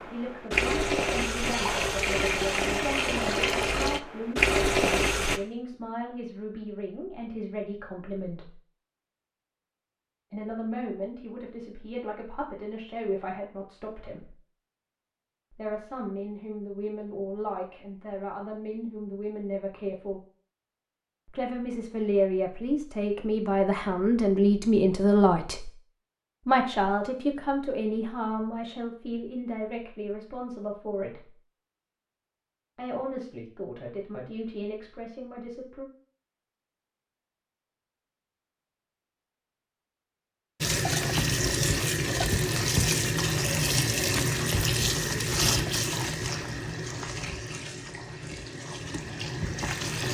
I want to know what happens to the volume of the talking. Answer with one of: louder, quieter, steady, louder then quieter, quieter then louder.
louder then quieter.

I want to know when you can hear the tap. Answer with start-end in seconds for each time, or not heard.
0.0-5.4, 40.6-50.0.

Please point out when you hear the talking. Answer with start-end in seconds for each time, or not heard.
0.1-8.5, 10.3-14.3, 15.5-20.2, 21.2-25.7, 26.4-31.3, 32.8-35.9.